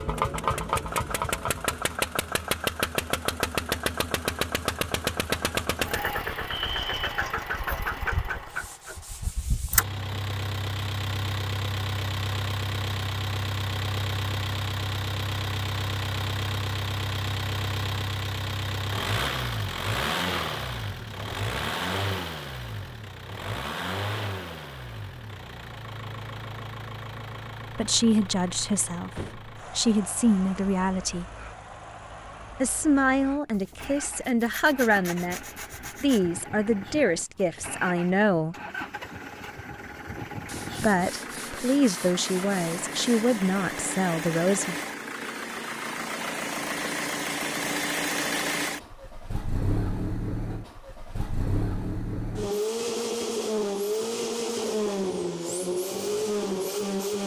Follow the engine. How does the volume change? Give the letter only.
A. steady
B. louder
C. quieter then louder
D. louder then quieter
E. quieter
C.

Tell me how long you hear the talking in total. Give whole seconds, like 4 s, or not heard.
13 s.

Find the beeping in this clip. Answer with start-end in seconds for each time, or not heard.
not heard.